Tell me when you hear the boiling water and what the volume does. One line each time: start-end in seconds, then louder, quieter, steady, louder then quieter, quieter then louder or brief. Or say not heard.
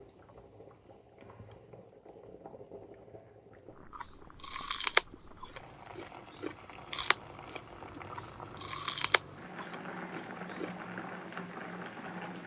0.0-12.4 louder.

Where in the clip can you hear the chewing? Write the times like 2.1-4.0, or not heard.
3.9-10.9.